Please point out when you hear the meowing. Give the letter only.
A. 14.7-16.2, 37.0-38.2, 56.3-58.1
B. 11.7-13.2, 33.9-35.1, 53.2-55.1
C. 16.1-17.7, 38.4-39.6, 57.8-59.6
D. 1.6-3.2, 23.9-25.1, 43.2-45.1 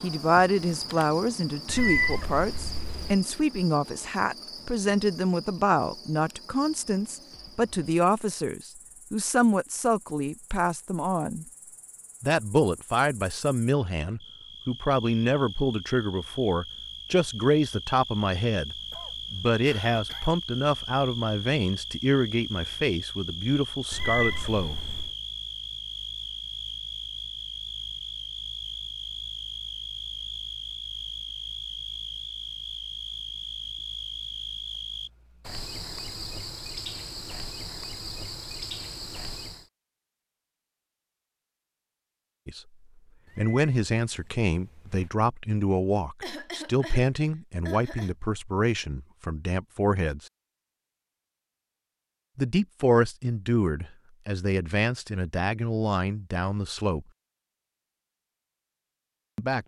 D.